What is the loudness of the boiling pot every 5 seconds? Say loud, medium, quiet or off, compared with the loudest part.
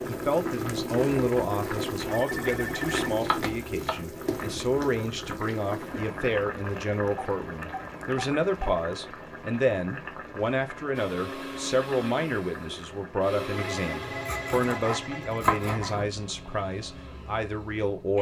loud, medium, medium, quiet.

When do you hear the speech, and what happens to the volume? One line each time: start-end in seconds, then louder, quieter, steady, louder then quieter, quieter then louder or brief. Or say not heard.
0.1-18.1 steady.